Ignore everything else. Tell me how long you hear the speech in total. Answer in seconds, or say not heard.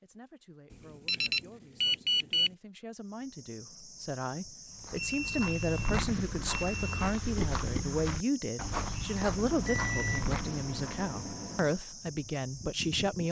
13 s.